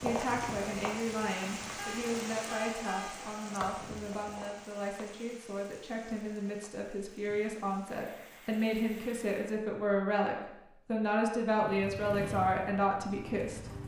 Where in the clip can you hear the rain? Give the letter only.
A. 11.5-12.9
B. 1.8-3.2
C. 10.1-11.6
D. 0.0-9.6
D.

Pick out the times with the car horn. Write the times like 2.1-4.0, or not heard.
1.8-3.2.